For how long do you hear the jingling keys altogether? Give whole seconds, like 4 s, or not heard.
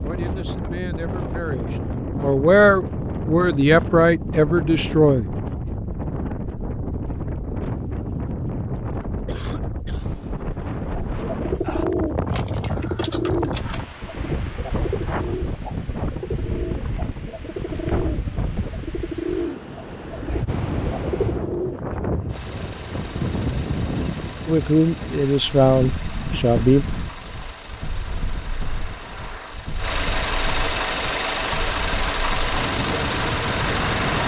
2 s.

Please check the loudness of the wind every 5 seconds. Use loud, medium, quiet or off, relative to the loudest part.
loud, loud, loud, loud, loud, medium, loud.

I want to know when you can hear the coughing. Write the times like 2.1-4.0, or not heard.
9.2-10.2.